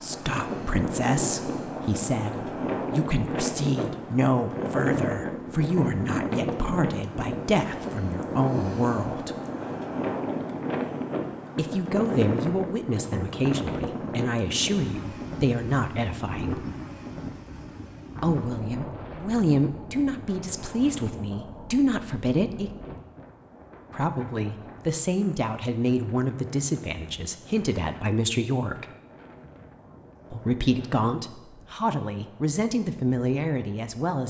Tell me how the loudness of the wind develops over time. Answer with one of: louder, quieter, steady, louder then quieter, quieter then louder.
quieter.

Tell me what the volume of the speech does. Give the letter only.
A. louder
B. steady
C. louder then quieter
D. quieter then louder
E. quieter
B.